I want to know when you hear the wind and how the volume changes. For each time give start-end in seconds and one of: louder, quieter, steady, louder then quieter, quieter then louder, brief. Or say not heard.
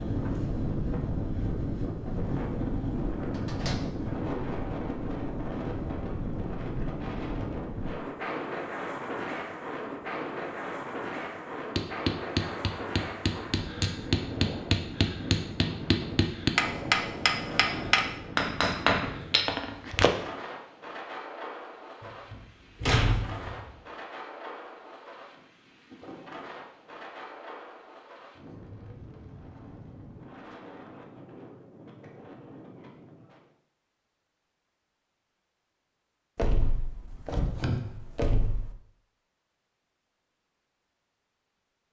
0.0-33.5 quieter.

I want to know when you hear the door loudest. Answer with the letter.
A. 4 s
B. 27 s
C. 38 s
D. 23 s
D.